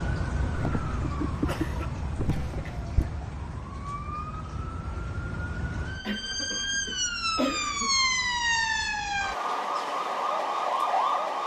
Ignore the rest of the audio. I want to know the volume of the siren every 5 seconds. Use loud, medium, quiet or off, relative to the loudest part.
medium, loud, loud.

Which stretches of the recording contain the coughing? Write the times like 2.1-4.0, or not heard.
0.6-3.1, 6.0-7.9.